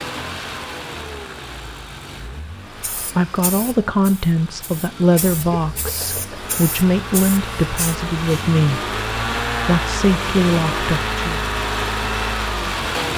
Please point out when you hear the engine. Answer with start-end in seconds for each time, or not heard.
0.0-13.1.